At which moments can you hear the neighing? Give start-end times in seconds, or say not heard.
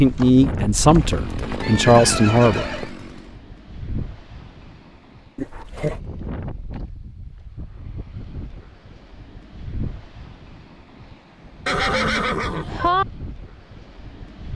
0.8-2.9, 5.3-6.0, 11.7-13.1.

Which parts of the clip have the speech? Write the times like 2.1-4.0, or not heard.
0.0-2.8.